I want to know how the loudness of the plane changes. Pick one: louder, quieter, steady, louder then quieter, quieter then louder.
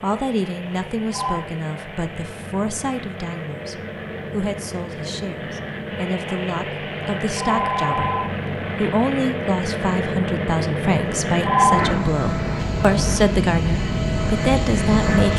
louder.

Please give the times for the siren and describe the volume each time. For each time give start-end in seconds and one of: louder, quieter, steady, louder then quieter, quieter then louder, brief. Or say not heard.
not heard.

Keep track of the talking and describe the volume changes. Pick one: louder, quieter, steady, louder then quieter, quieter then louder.
louder.